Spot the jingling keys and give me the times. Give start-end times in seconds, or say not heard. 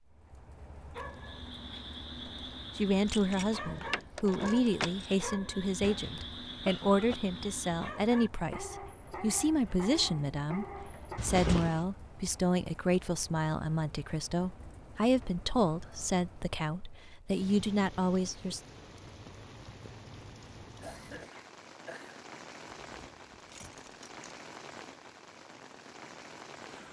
3.0-5.2, 11.2-11.8, 22.8-24.2.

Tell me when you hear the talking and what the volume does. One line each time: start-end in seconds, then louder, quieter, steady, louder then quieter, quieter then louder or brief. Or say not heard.
2.8-18.6 steady.